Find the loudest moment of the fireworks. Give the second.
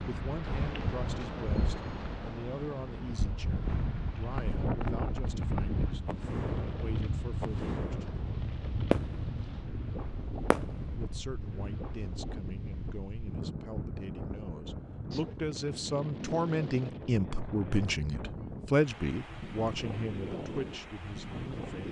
9 s.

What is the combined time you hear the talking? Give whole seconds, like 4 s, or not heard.
19 s.